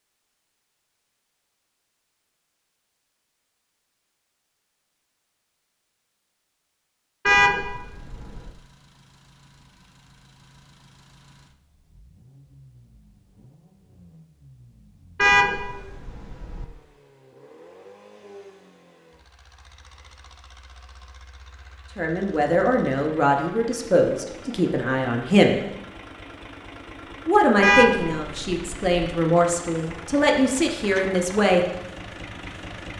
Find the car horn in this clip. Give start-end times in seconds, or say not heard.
7.2-8.5, 15.2-16.6, 27.6-28.9.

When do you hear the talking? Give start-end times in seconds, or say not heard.
21.9-25.6, 27.2-31.6.